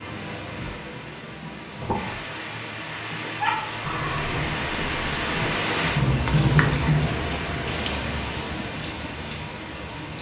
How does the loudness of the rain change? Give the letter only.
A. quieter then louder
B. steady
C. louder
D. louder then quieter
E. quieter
D.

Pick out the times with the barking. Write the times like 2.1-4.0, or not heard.
3.4-4.2.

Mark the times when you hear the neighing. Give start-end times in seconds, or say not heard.
3.8-5.5.